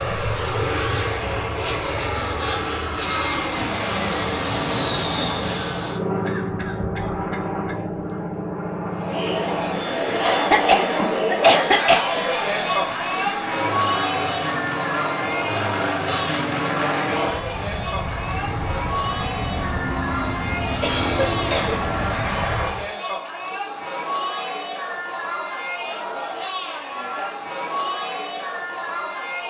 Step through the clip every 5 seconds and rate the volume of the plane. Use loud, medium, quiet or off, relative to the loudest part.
loud, loud, medium, loud, loud, off.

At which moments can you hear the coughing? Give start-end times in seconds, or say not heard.
6.2-7.8, 10.2-12.0, 20.8-21.9.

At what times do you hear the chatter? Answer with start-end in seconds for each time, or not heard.
8.8-29.4.